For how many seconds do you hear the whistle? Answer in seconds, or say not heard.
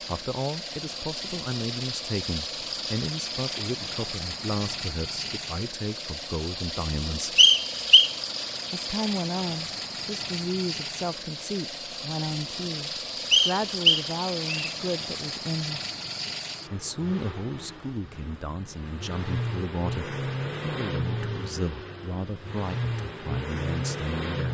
2 s.